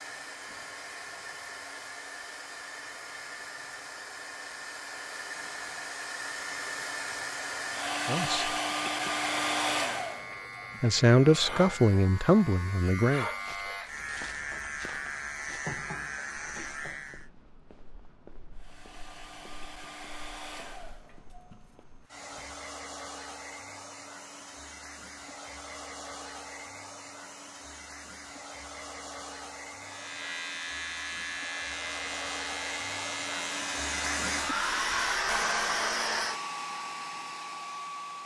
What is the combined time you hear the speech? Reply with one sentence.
The speech can be heard for 3 seconds in total.